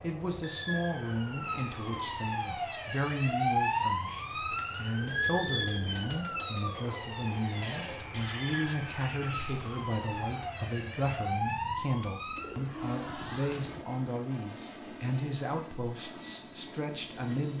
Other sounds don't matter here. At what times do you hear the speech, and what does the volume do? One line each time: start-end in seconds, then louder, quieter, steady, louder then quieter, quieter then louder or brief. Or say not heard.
0.0-17.5 steady.